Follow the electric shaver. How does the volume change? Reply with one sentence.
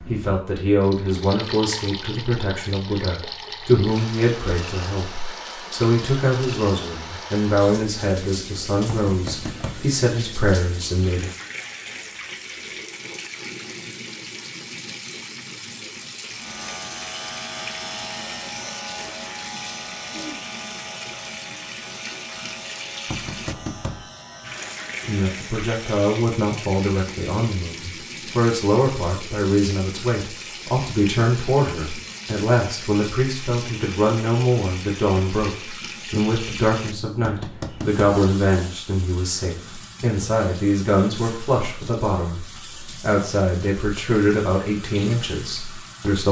The volume of the electric shaver goes down.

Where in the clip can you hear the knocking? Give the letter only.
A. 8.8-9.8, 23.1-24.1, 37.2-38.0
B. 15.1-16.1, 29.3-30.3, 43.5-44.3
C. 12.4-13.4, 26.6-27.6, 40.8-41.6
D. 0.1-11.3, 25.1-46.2
A.